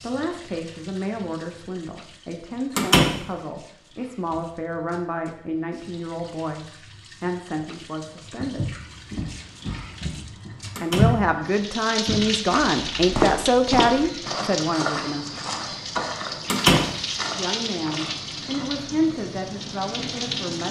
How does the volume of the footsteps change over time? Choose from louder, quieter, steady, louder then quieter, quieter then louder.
quieter.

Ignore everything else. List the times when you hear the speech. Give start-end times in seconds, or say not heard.
0.0-8.8, 10.8-15.4, 17.3-20.6.